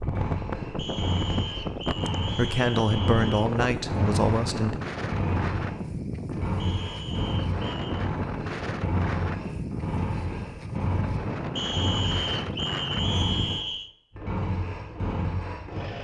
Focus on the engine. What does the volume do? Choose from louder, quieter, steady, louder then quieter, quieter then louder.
steady.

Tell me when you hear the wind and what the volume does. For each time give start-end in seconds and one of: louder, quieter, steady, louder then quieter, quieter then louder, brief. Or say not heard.
0.0-13.7 steady.